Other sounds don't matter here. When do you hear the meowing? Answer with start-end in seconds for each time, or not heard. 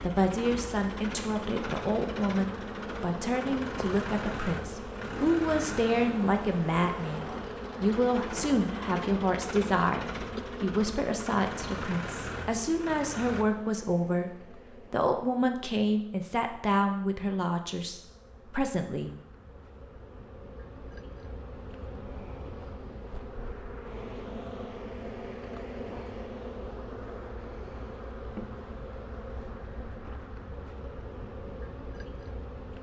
not heard.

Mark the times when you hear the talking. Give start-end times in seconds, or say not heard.
0.0-14.3, 14.9-19.1.